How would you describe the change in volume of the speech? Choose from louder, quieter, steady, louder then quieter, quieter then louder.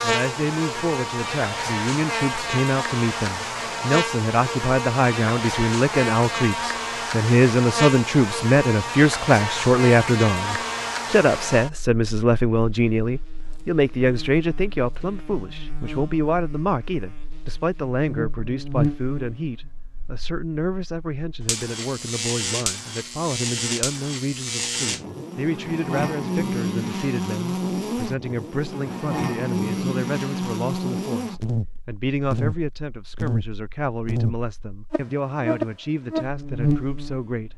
quieter.